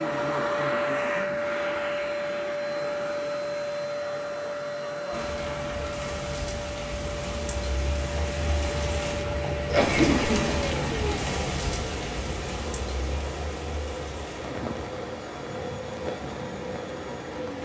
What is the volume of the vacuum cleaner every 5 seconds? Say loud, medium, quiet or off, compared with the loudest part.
loud, medium, medium, medium.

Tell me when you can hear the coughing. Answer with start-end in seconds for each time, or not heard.
9.7-10.6.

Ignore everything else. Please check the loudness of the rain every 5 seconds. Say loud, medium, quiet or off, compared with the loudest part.
off, loud, loud, medium.